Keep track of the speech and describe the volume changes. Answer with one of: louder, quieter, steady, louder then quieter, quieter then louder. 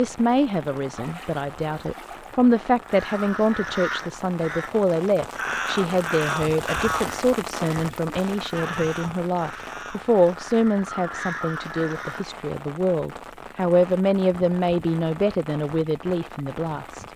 steady.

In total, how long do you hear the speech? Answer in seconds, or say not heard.
17 s.